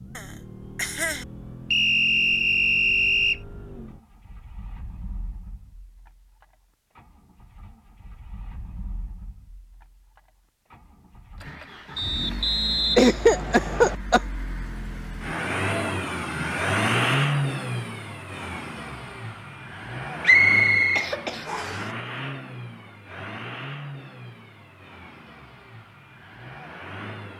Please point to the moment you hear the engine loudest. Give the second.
17 s.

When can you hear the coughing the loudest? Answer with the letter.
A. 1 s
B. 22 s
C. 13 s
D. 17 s
C.